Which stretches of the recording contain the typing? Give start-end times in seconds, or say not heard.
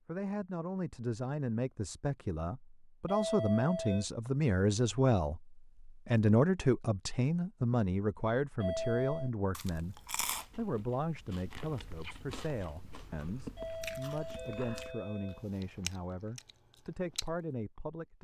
not heard.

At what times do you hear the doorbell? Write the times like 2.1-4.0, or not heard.
3.0-4.0, 8.6-9.3, 13.6-15.4.